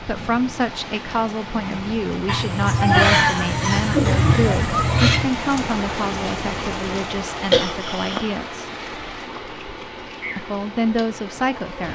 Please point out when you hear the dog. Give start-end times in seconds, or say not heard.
2.2-5.3.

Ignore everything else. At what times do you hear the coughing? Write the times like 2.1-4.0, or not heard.
3.0-4.0, 7.5-8.3.